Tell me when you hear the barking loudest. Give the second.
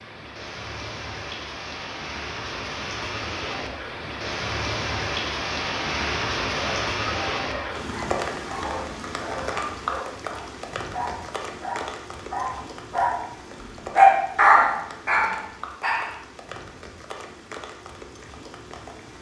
14 s.